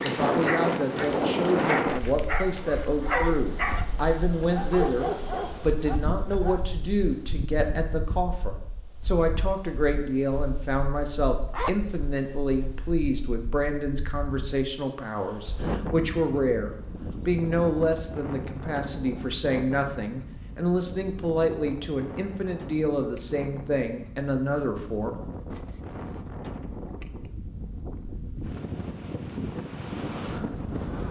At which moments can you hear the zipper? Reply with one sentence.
The zipper can be heard from 3.0 to 3.9 s, from 11.5 to 12.1 s and from 25.5 to 26.4 s.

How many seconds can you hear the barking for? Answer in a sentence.
You can hear the barking for 6 seconds altogether.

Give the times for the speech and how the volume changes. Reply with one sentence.
You can hear the speech from 0.0 to 25.1 s, at a steady volume.